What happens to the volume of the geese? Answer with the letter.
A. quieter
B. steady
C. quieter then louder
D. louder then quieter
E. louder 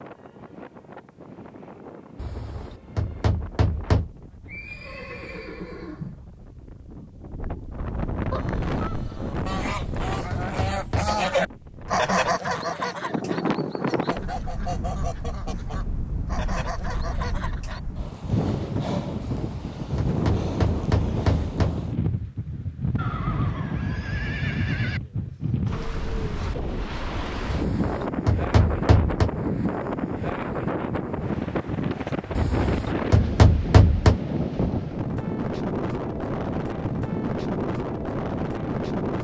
D.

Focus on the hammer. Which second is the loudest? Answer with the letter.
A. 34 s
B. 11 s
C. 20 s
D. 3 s
A.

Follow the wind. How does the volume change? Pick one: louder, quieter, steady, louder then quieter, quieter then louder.
louder.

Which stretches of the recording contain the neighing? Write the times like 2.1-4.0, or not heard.
4.5-6.2, 22.9-25.0.